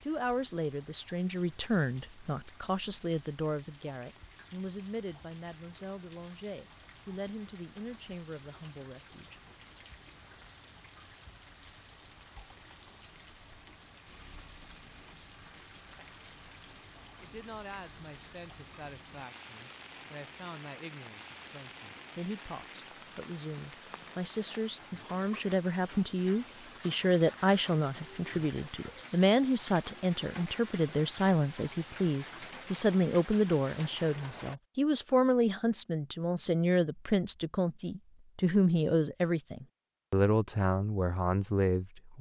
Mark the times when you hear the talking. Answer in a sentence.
You can hear the talking from 0.1 to 9.5 s and from 17.2 to 42.1 s.